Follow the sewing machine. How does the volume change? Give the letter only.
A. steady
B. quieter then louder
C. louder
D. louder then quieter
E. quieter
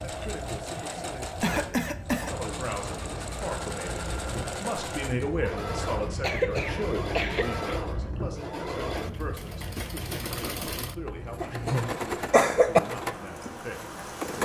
A.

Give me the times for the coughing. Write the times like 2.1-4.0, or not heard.
0.8-3.0, 6.0-7.8, 11.4-12.8.